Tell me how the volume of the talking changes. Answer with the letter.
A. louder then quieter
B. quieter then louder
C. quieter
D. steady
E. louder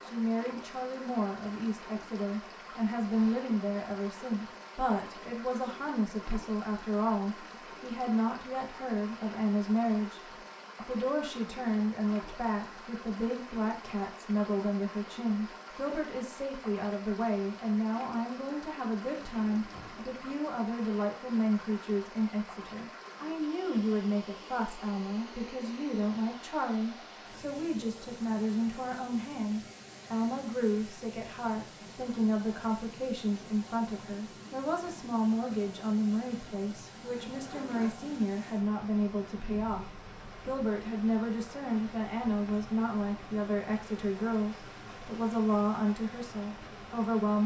D.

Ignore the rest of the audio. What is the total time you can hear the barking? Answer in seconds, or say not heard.
not heard.